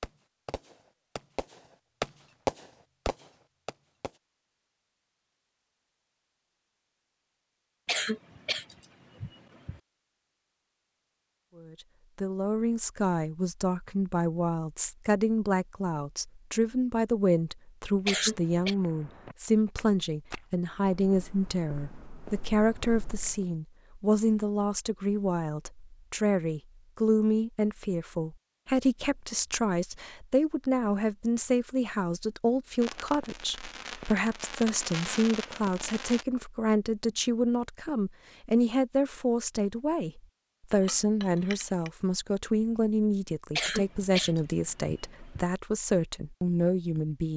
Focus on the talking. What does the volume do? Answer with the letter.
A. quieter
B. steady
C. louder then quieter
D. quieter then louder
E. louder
B.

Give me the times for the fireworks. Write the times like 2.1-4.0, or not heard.
0.0-4.1, 32.8-36.2.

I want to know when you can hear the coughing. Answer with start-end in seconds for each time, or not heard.
7.8-9.8, 18.1-18.8, 43.5-45.5.